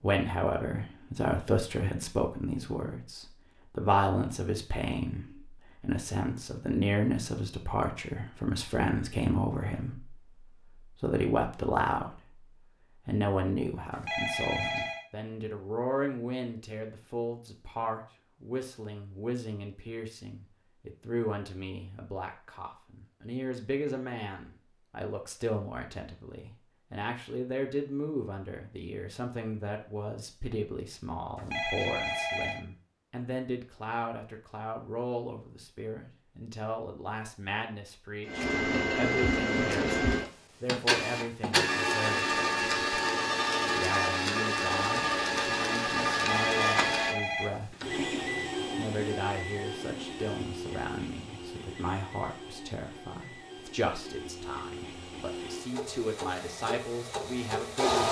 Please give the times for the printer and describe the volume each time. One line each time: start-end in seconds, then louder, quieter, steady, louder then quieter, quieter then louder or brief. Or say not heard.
38.2-58.0 quieter.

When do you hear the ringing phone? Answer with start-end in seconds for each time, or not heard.
13.9-15.1, 31.4-32.6, 46.1-47.9.